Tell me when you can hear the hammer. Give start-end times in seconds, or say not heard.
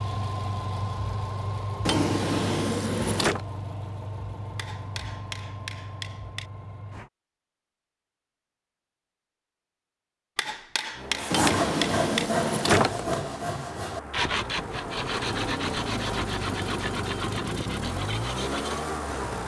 4.5-6.5, 10.3-12.2.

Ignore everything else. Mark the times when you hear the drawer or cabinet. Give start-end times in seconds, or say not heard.
1.9-3.4, 11.3-13.2.